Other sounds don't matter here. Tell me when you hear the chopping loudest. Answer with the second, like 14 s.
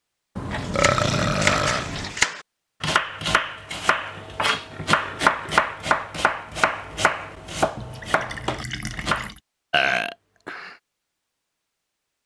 5 s.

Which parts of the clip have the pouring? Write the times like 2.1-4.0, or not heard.
0.3-2.2, 7.8-9.4.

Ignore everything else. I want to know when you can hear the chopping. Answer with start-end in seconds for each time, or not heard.
0.7-9.3.